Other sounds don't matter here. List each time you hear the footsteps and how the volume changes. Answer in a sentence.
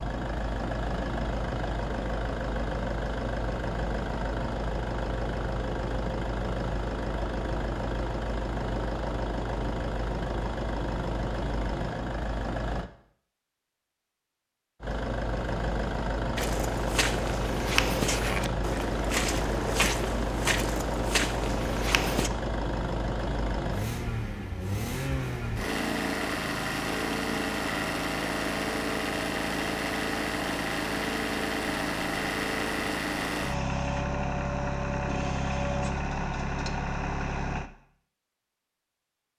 The footsteps can be heard from 16.4 to 22.3 s, at a steady volume.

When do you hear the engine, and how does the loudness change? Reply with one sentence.
The engine can be heard from 0.0 to 12.9 s, at a steady volume; and from 14.8 to 37.7 s, at a steady volume.